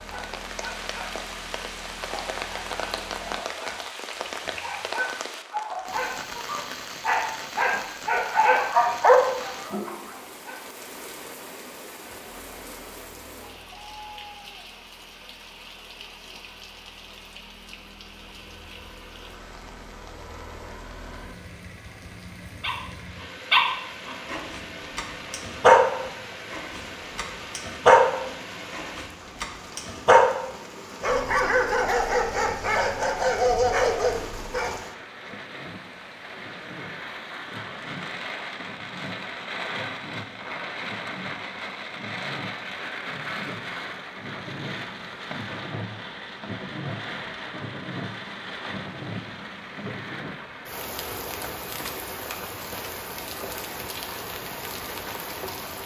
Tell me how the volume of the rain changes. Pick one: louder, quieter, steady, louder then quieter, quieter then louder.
quieter then louder.